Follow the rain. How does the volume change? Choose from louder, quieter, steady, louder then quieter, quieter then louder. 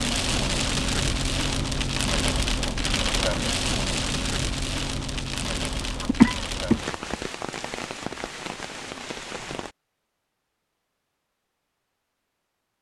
quieter.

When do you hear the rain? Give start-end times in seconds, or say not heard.
0.0-9.8.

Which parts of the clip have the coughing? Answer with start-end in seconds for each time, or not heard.
5.6-6.8.